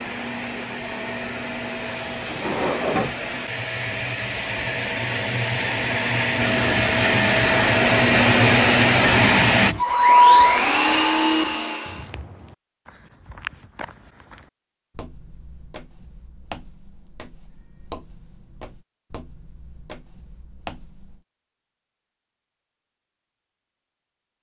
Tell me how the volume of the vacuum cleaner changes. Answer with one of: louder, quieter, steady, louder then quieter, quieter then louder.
louder.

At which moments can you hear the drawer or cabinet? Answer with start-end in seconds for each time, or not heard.
2.2-3.1.